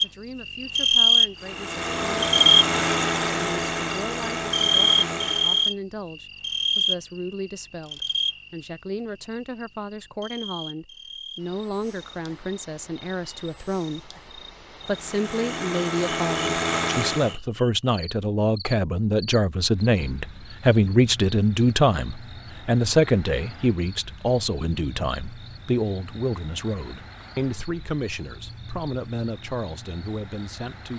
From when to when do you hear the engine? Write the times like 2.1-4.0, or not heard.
1.4-5.7, 14.8-17.4.